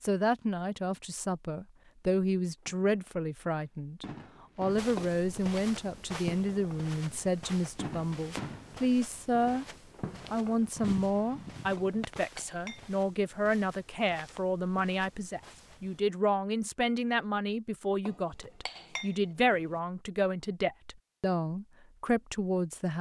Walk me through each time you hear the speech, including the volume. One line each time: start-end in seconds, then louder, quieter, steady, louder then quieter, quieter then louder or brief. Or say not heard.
0.0-9.7 steady
10.3-22.9 steady.